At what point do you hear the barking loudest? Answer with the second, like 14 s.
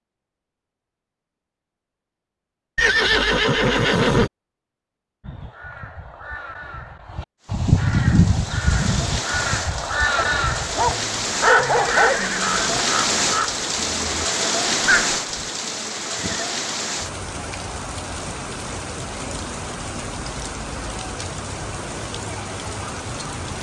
12 s.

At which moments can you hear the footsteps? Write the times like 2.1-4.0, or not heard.
not heard.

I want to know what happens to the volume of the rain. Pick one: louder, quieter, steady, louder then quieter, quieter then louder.
louder then quieter.